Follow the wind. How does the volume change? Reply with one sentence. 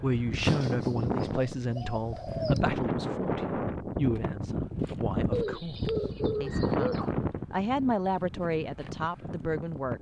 The volume of the wind goes down.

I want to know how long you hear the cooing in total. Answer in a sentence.
You can hear the cooing for 4 seconds altogether.